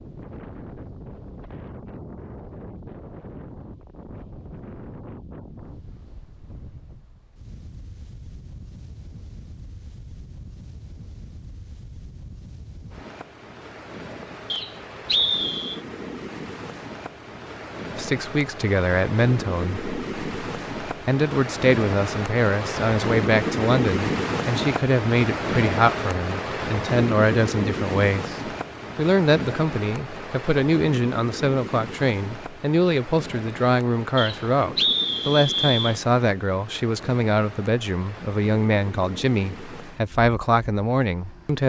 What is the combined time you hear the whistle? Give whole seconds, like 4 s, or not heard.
3 s.